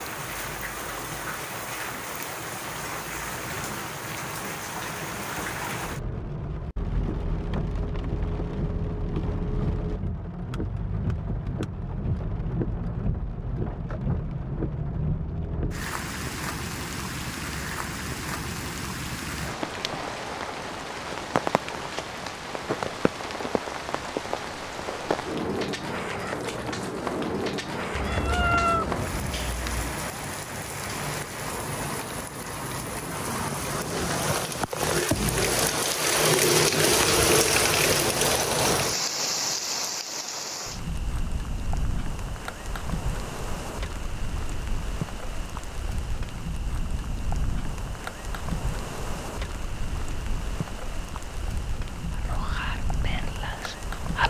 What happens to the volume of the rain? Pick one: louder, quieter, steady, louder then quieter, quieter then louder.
louder then quieter.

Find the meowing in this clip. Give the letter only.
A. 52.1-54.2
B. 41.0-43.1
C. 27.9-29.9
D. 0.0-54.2
C.